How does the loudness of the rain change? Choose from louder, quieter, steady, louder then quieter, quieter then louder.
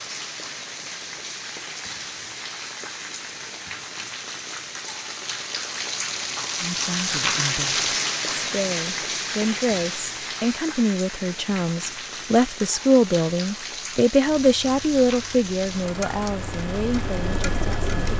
louder then quieter.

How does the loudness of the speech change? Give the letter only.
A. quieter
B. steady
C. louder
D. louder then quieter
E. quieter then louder
D.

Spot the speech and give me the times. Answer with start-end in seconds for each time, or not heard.
6.6-18.1.